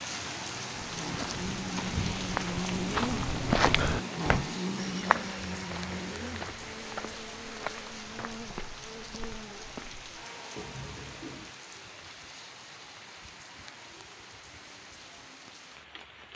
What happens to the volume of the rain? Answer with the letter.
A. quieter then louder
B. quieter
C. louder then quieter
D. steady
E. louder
B.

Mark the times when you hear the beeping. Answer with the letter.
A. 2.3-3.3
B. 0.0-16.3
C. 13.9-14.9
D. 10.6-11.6
D.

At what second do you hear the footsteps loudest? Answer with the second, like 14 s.
4 s.